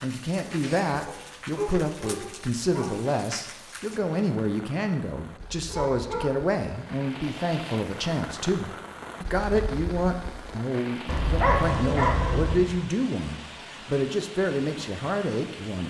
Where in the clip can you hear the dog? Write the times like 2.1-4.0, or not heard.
0.5-3.0, 5.7-6.5, 11.1-12.8.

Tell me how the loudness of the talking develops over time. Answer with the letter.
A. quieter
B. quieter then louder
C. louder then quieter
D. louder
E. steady
E.